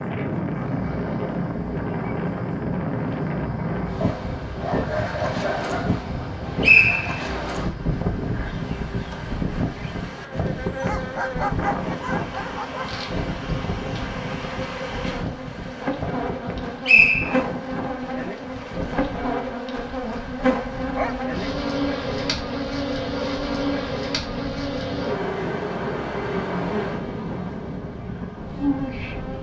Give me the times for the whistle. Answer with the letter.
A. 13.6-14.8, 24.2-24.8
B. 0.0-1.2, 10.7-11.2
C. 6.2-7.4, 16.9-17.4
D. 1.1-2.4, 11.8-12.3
C.